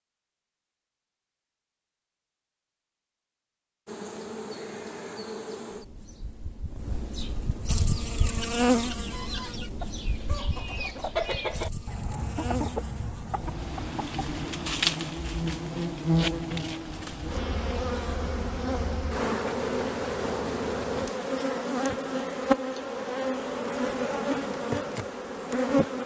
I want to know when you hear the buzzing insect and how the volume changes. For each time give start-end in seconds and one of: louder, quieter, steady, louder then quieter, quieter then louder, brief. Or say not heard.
3.9-26.0 louder.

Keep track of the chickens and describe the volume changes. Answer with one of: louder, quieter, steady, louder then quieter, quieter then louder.
louder then quieter.